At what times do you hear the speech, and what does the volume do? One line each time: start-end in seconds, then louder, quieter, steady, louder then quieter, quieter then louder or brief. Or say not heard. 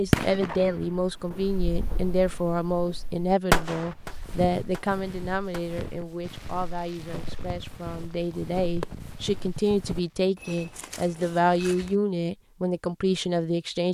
0.0-13.9 quieter then louder.